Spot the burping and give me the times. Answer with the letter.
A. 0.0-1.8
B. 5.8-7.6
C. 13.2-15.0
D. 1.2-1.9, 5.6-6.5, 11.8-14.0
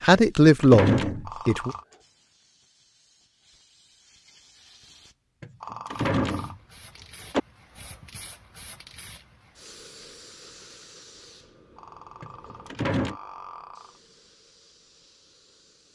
D.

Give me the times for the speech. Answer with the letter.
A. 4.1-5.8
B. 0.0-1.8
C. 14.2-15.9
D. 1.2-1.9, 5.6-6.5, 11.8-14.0
B.